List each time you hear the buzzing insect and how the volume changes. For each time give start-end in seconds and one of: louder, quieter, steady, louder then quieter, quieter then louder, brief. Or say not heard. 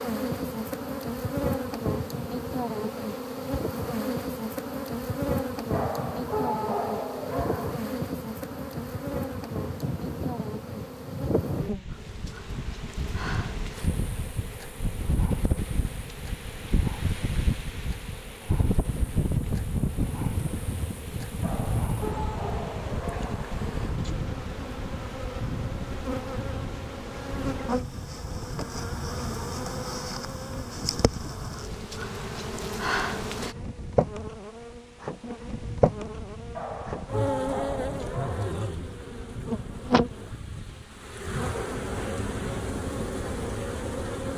0.0-44.3 quieter then louder.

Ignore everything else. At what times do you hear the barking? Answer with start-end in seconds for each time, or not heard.
5.7-7.8, 21.4-23.4, 36.5-38.5.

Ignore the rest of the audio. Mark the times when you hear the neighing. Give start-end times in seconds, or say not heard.
not heard.